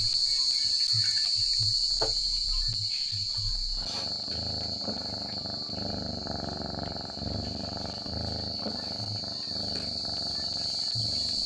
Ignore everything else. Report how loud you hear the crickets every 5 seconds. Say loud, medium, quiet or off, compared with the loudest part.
loud, medium, loud.